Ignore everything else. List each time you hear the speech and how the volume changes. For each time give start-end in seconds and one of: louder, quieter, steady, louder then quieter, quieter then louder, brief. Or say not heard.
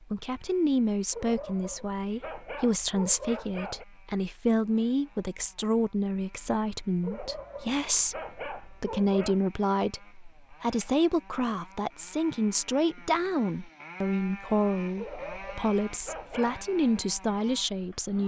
0.0-18.2 steady.